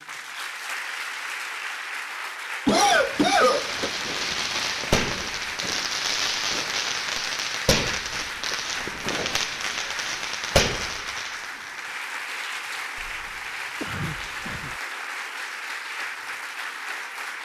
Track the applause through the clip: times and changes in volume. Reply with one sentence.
You can hear the applause from 0.0 to 17.4 s, at a steady volume.